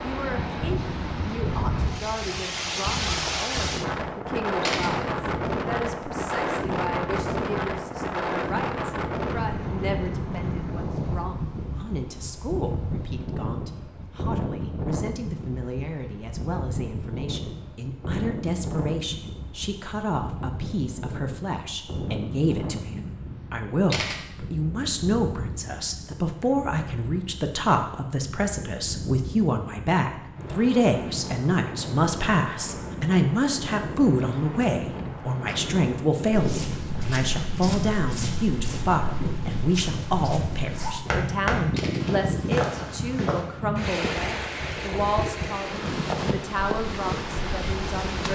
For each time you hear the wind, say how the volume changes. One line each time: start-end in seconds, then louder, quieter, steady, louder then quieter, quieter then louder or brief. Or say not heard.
0.0-48.3 quieter then louder.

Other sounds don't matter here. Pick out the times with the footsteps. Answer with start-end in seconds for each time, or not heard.
36.3-43.5.